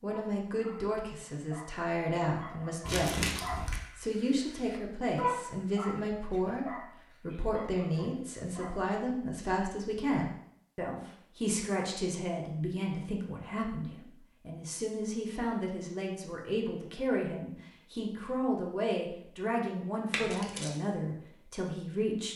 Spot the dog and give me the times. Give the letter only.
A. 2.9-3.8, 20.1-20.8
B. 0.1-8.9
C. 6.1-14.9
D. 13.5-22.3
B.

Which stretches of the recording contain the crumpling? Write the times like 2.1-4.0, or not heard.
2.9-3.8, 20.1-20.8.